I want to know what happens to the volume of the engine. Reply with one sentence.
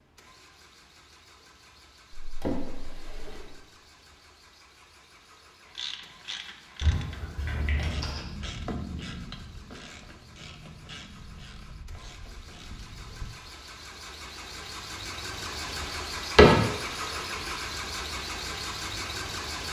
The volume of the engine goes up.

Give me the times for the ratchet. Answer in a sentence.
The ratchet can be heard from 5.7 to 13.3 s.